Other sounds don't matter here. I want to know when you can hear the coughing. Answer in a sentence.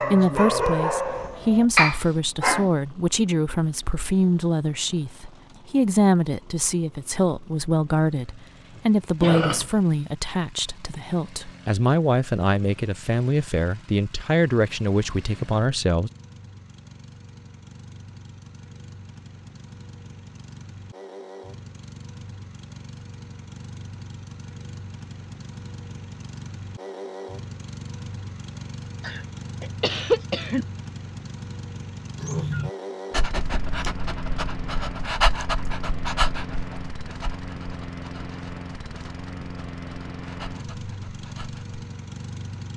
You can hear the coughing from 8.8 to 9.7 s and from 29.0 to 30.6 s.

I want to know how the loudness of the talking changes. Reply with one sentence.
The volume of the talking stays about the same.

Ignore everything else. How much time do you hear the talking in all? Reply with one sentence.
The talking can be heard for 16 seconds in total.